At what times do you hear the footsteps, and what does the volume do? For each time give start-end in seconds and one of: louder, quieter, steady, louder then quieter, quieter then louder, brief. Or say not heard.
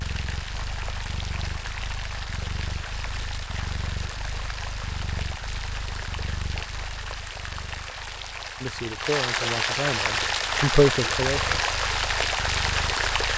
not heard.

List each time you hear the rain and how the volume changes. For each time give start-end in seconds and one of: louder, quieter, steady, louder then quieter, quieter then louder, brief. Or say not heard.
0.0-13.3 louder.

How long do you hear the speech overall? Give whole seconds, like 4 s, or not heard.
3 s.